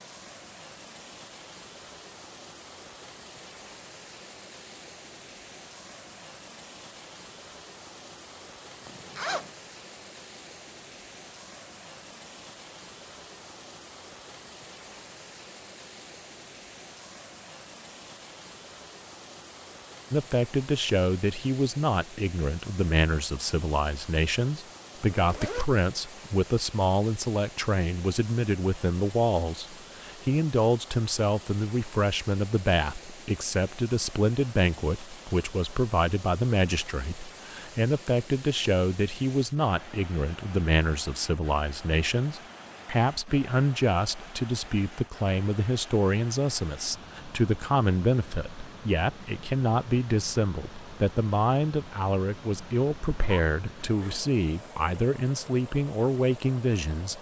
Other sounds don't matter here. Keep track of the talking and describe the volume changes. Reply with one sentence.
The volume of the talking stays about the same.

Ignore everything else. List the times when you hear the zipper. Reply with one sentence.
The zipper can be heard from 8.8 to 9.5 s, from 25.1 to 25.6 s and from 53.1 to 54.3 s.